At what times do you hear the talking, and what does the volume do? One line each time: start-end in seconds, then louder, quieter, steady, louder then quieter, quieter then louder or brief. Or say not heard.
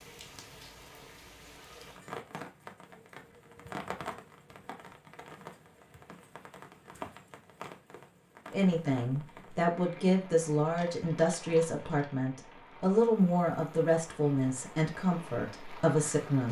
8.5-16.4 steady.